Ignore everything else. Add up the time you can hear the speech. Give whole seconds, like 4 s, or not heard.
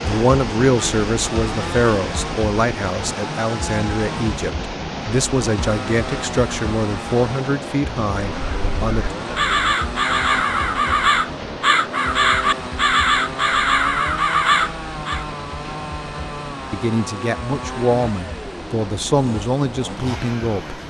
13 s.